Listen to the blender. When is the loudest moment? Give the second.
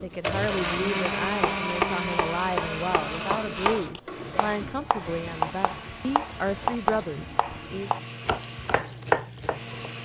1 s.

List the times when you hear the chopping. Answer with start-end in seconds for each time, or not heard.
1.0-9.9.